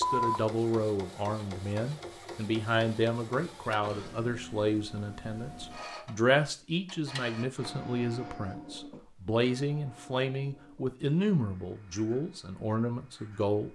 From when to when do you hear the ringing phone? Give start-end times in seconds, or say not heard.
0.0-0.4.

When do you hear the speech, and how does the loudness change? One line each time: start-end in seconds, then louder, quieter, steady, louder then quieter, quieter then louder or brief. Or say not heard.
0.0-13.7 steady.